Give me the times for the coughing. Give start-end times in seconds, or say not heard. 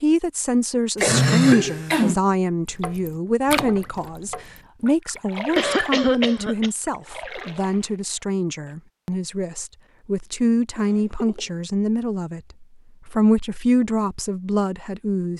1.0-2.1, 5.5-6.7, 10.8-11.5.